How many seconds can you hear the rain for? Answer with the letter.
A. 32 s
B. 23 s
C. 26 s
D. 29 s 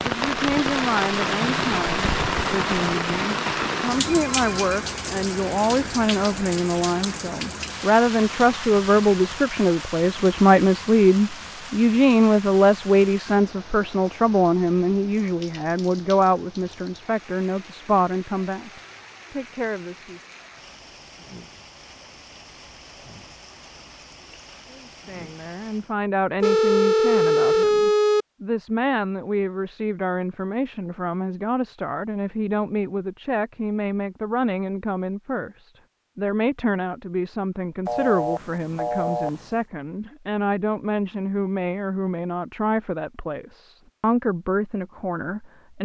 C.